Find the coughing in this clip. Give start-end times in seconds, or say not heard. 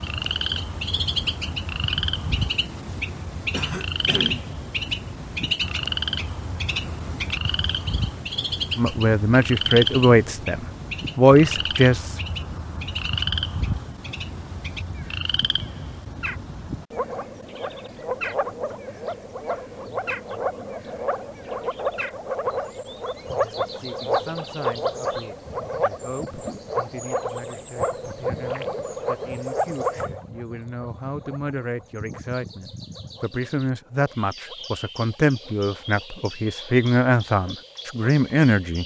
3.5-4.5.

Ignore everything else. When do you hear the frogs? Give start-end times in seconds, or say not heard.
0.0-38.8.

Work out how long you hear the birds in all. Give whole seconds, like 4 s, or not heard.
39 s.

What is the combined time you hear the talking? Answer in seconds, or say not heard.
19 s.